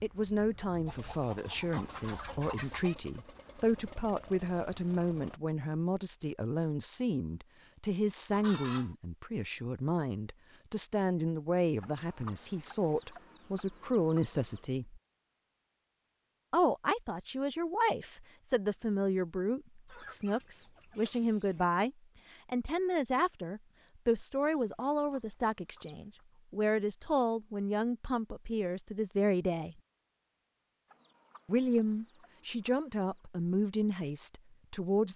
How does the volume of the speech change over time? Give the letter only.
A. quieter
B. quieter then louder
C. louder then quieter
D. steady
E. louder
D.